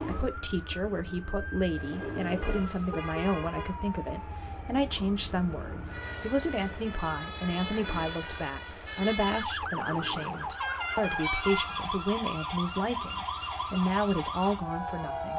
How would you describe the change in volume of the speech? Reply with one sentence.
The loudness of the speech stays about the same.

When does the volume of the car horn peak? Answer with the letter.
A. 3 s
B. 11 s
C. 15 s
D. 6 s
B.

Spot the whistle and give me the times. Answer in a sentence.
You can't hear the whistle here.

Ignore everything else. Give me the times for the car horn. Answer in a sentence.
The car horn can be heard from 2.4 to 3.8 s and from 10.6 to 11.8 s.